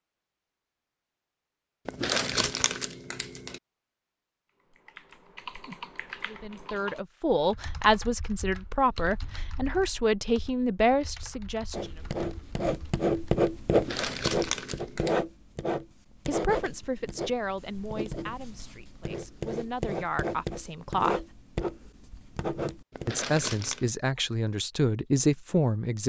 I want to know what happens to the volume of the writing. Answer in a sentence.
The loudness of the writing goes down.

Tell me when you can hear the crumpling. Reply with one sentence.
You can hear the crumpling from 1.9 to 3.6 s, from 13.7 to 15.2 s and from 22.9 to 23.9 s.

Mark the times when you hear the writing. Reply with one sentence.
You can hear the writing from 11.7 to 23.2 s.